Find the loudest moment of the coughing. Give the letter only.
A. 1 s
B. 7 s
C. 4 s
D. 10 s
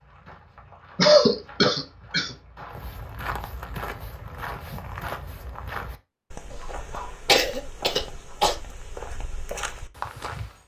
A.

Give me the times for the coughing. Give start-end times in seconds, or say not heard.
0.9-2.4, 6.5-8.6.